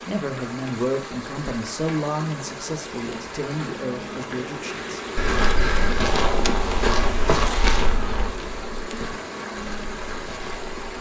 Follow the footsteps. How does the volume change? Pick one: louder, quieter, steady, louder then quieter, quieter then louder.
quieter.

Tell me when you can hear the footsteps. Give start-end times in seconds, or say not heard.
5.2-10.9.